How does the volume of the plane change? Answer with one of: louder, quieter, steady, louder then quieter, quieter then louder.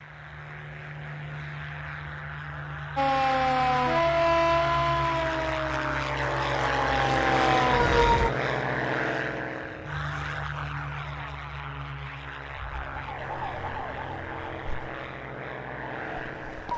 louder then quieter.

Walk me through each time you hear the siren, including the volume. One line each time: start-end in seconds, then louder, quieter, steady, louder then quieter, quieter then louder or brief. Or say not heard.
3.0-8.3 quieter then louder
12.6-16.7 quieter then louder.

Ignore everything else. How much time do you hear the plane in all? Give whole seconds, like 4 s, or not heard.
17 s.